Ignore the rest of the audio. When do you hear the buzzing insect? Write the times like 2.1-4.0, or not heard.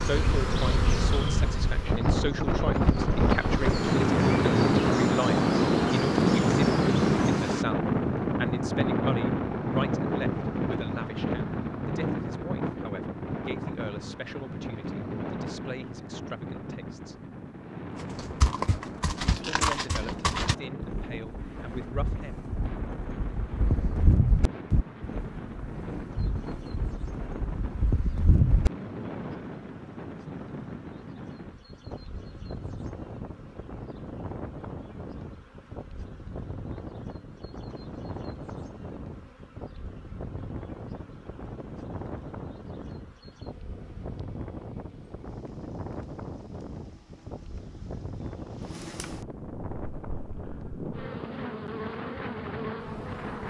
0.0-7.7, 21.4-53.4.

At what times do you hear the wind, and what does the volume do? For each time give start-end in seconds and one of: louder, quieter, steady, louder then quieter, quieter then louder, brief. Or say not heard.
0.0-53.4 quieter.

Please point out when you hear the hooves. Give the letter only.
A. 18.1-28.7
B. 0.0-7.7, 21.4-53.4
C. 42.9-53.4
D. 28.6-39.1
A.